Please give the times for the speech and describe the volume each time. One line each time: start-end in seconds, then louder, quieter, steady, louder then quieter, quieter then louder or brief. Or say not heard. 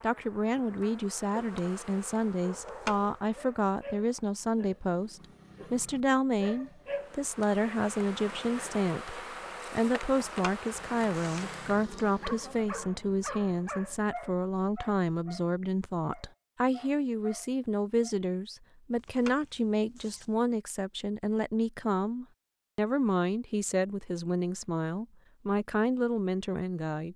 0.0-27.1 steady.